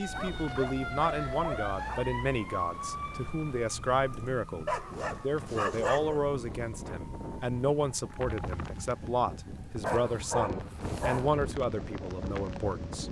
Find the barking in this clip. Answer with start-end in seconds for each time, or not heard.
0.1-2.1, 4.7-6.2, 9.8-11.4.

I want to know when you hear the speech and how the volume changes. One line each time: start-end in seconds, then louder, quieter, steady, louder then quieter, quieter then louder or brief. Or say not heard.
0.0-13.0 steady.